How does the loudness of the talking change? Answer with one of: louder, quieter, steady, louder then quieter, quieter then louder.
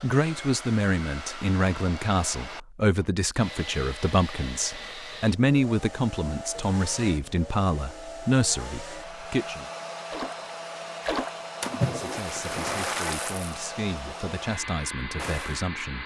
quieter.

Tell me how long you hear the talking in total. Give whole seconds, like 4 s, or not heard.
14 s.